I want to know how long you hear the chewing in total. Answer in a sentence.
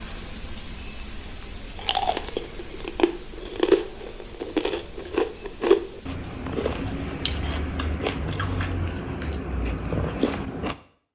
The chewing can be heard for 9 seconds in total.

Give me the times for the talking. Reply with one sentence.
You can't hear the talking here.